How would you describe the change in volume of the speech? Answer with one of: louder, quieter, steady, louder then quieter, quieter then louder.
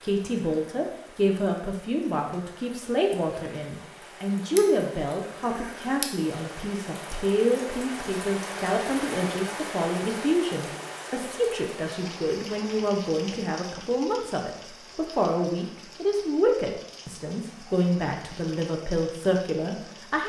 steady.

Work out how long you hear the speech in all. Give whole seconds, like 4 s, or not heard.
20 s.